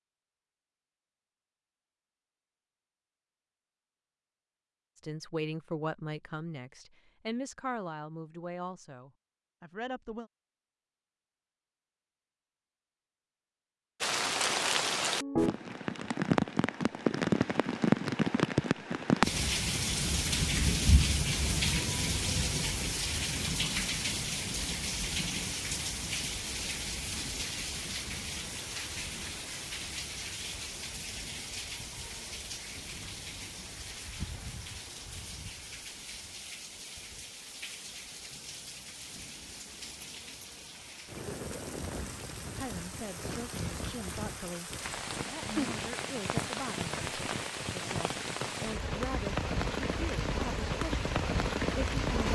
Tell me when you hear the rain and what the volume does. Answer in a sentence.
You can hear the rain from 14.0 to 52.3 s, getting quieter then louder.